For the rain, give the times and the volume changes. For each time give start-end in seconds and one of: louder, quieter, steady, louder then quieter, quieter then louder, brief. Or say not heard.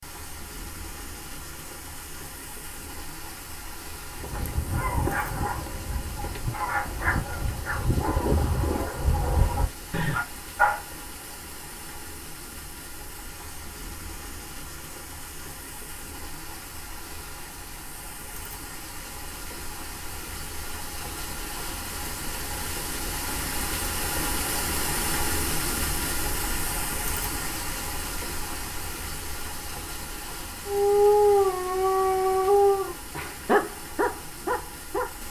0.0-35.2 louder then quieter.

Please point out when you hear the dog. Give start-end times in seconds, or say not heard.
4.2-10.8, 30.6-35.2.